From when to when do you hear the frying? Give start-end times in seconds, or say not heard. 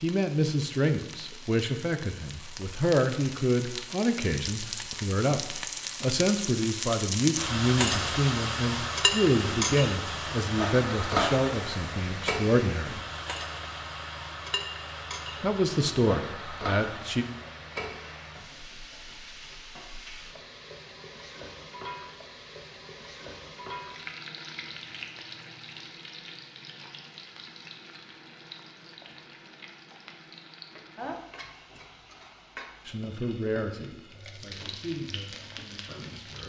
0.0-36.4.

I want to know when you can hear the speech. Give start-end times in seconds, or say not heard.
0.0-13.0, 15.4-17.2, 32.9-36.4.